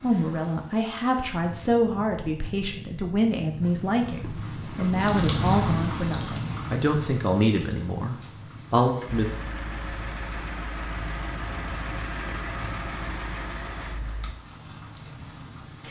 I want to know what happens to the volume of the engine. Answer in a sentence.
The loudness of the engine stays about the same.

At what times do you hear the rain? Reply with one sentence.
You can hear the rain from 0.0 to 15.8 s.